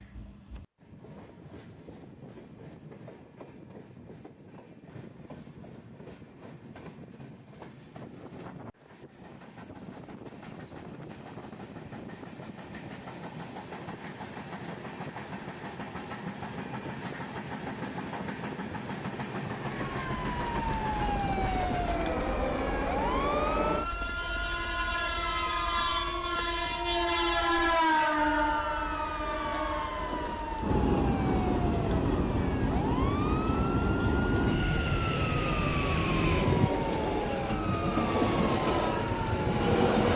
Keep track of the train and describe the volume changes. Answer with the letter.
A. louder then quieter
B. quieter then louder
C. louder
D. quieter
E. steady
C.